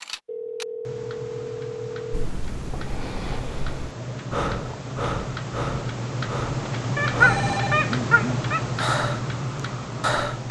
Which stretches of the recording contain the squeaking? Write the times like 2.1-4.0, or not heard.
7.0-8.6.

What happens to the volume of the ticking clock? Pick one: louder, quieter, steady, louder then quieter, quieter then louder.
louder.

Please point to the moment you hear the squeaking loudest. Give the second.
7 s.